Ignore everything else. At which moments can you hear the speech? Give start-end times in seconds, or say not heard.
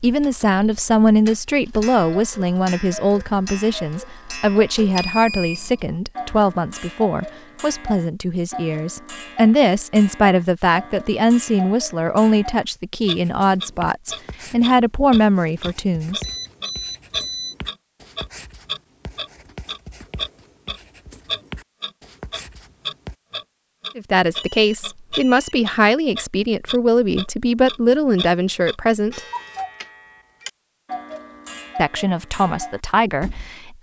0.0-16.2, 23.9-29.2, 31.8-33.7.